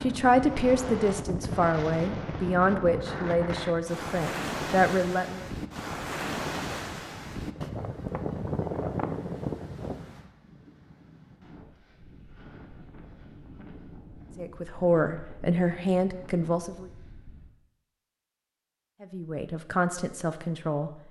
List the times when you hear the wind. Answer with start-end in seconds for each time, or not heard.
0.0-17.5.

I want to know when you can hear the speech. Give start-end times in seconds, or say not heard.
0.0-5.5, 14.3-16.9, 19.0-20.9.